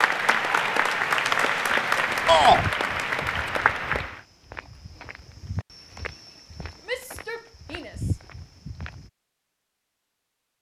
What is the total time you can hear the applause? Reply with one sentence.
You can hear the applause for 4 seconds altogether.